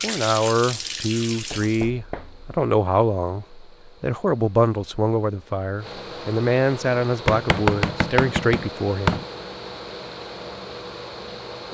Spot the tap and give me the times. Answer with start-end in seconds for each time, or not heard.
0.0-1.9.